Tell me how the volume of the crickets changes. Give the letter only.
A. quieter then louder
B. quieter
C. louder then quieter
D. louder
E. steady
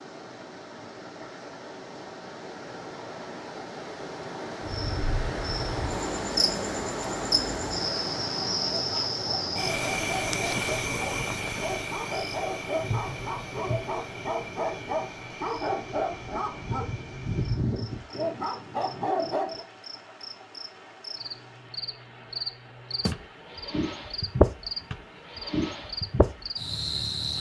A.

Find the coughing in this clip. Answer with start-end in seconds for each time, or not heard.
not heard.